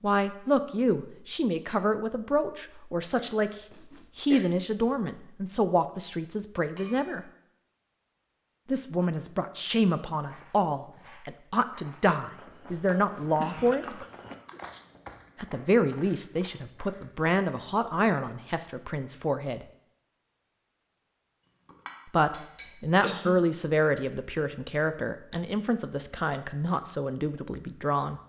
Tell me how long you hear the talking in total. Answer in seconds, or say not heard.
23 s.